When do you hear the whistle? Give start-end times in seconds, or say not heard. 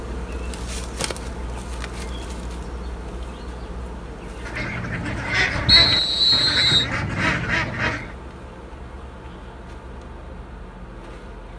5.7-6.8.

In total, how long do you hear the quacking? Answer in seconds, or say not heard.
4 s.